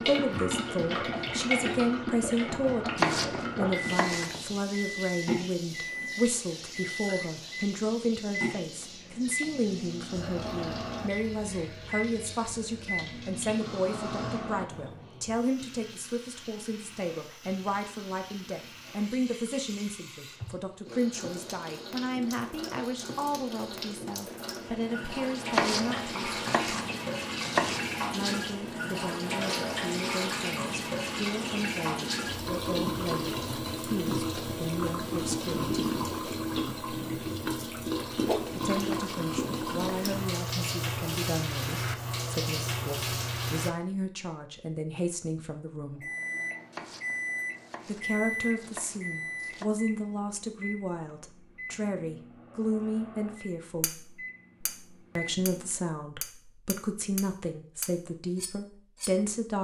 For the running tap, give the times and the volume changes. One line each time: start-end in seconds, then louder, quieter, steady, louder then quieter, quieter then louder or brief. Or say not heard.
0.0-43.7 quieter then louder.